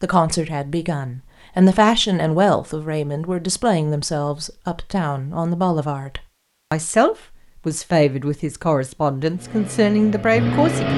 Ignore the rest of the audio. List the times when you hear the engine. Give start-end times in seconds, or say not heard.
9.3-10.9.